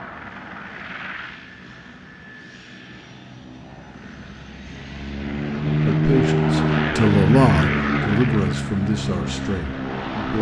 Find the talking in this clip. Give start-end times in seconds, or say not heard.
5.8-10.3.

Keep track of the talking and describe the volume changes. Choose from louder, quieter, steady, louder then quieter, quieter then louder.
louder then quieter.